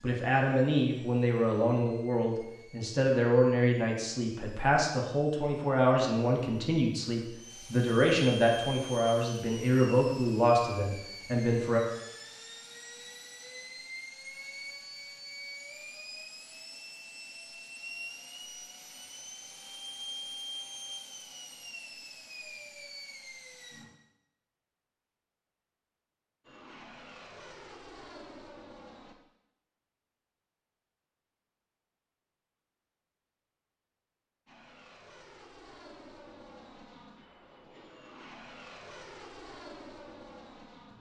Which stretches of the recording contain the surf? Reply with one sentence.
You can't hear the surf here.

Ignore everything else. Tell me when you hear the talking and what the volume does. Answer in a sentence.
You can hear the talking from 0.0 to 11.8 s, at a steady volume.